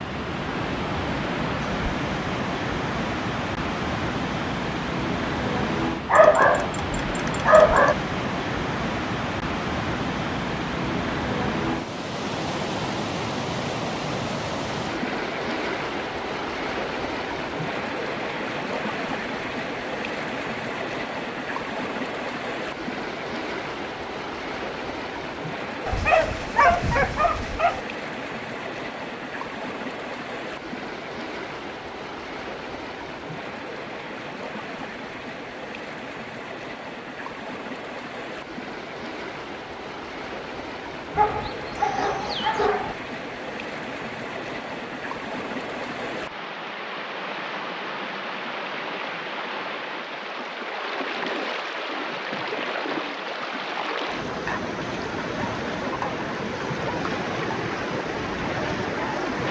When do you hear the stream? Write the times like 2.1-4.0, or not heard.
0.0-59.4.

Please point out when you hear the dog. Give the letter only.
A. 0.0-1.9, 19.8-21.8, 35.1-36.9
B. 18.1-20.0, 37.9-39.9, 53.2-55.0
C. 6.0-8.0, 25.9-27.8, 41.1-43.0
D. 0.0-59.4
C.